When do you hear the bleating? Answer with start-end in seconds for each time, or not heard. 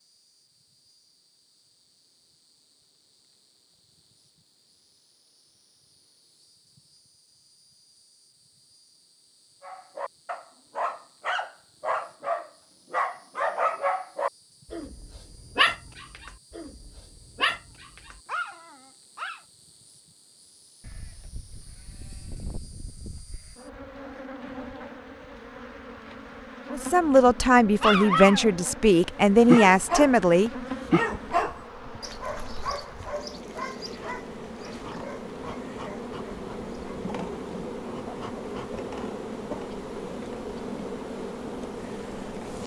20.8-23.6.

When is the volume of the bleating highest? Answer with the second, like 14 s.
22 s.